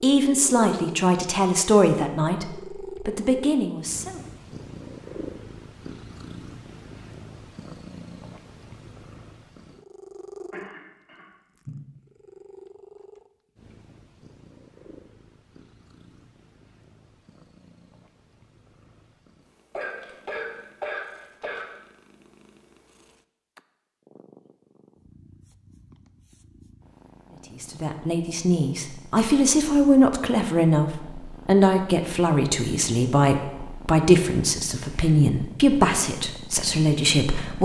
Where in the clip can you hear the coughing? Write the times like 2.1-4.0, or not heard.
10.5-11.8, 19.7-21.7.